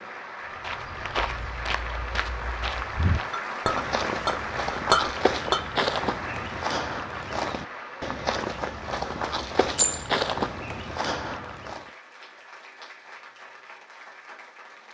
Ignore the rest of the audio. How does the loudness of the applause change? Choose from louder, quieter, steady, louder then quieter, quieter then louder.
quieter.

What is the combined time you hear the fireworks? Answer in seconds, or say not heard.
not heard.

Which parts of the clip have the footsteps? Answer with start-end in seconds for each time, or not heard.
0.6-11.9.